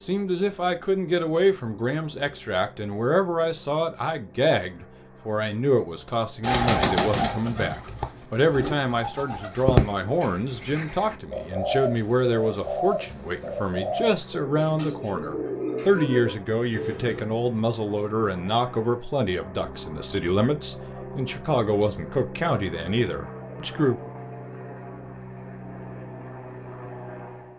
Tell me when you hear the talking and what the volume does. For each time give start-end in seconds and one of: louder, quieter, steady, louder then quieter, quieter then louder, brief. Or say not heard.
0.0-24.1 steady.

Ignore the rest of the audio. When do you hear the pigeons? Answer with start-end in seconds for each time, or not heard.
6.4-17.2.